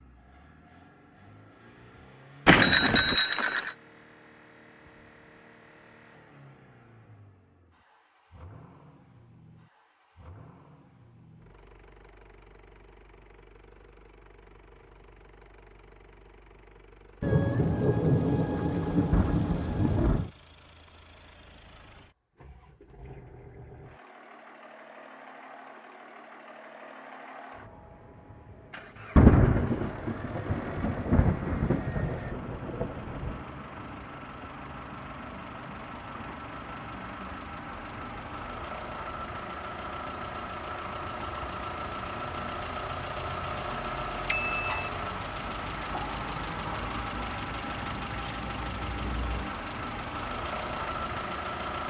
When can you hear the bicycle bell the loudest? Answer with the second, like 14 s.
3 s.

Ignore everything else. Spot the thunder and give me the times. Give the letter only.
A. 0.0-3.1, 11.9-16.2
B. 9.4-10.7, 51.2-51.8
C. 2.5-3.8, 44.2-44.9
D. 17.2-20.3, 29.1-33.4
D.